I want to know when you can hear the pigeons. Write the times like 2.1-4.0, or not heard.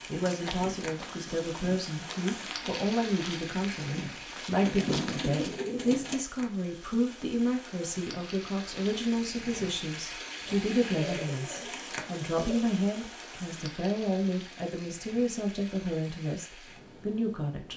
4.6-6.2, 10.4-12.7.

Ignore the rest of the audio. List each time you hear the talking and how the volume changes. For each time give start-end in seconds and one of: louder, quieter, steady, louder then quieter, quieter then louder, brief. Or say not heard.
0.1-17.7 steady.